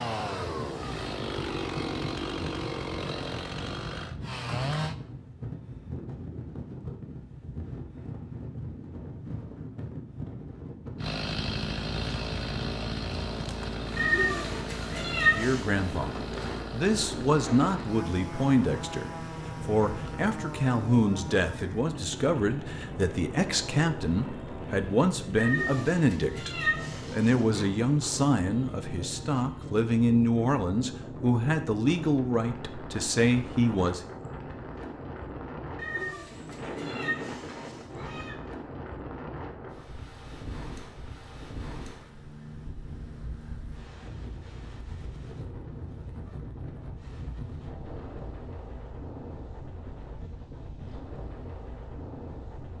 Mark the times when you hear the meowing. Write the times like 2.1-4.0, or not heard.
13.9-15.7, 25.4-27.6, 35.8-38.4.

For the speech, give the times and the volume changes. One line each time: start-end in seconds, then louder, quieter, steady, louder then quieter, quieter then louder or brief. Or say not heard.
15.3-34.0 steady.